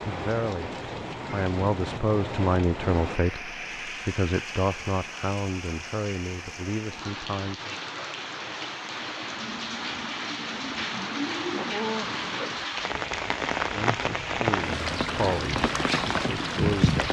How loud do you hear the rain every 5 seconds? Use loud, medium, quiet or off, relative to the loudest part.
medium, medium, loud, loud.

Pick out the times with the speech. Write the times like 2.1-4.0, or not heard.
0.1-0.7, 1.3-7.8, 13.7-17.0.